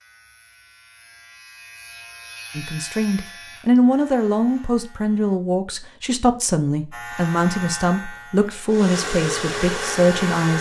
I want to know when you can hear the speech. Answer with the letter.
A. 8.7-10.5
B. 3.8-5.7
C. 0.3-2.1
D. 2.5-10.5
D.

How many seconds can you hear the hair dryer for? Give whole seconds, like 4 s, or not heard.
2 s.